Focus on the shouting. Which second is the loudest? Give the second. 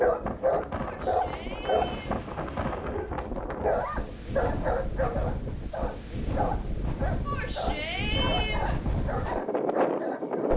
8 s.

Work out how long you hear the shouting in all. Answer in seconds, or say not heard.
3 s.